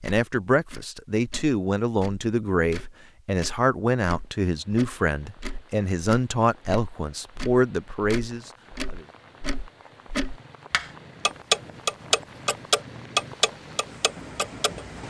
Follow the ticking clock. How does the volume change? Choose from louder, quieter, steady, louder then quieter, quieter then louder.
louder.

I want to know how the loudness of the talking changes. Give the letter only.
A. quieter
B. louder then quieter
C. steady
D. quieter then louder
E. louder
C.